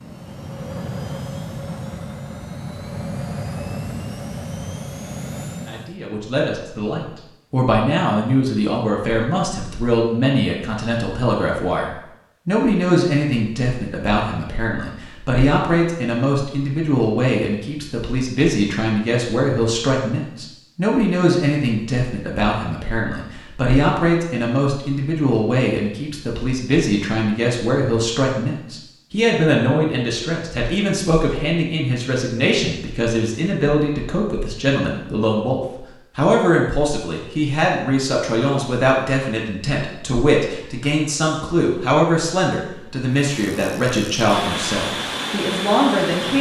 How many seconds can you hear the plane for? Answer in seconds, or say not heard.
9 s.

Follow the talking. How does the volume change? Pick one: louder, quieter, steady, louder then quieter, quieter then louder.
steady.